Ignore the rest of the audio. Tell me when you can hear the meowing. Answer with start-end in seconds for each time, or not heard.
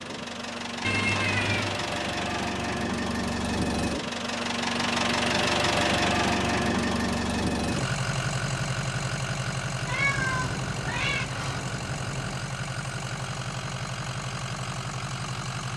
0.8-1.9, 9.8-11.2.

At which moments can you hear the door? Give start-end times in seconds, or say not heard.
10.2-12.4.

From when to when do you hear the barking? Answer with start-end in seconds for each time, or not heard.
not heard.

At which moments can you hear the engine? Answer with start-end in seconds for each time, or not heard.
0.0-15.7.